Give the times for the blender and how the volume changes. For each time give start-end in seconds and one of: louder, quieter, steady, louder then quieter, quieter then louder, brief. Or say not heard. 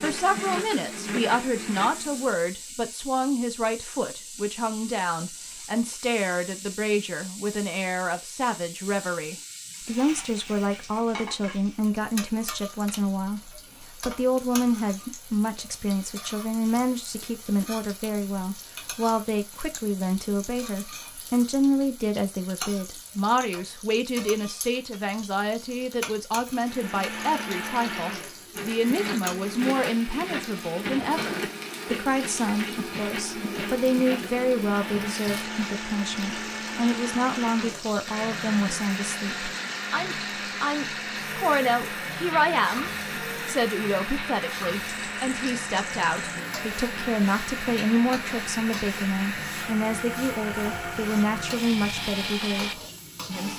0.0-2.4 brief
26.6-53.5 steady.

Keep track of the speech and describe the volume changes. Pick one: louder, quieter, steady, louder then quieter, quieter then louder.
steady.